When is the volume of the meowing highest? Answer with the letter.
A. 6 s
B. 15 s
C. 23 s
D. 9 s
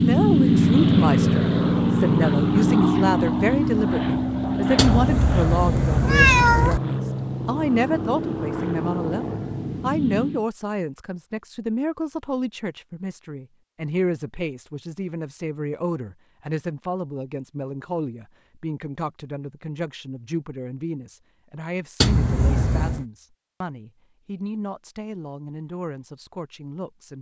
A.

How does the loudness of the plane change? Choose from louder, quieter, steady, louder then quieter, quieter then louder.
quieter.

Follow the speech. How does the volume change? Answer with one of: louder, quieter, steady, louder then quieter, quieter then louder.
quieter.